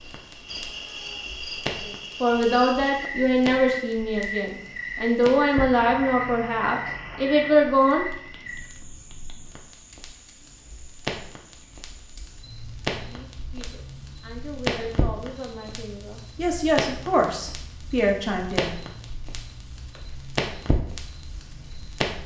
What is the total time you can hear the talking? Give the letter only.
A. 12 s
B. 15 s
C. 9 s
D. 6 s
A.